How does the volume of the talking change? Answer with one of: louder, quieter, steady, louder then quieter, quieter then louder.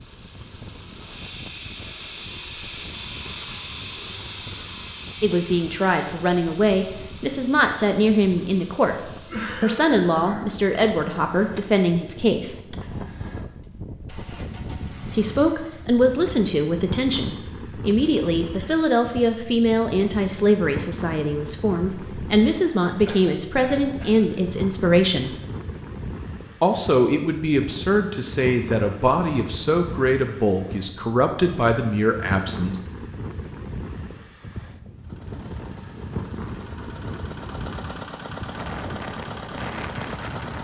steady.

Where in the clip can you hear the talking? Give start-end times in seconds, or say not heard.
5.2-12.7, 15.1-25.4, 26.6-32.8.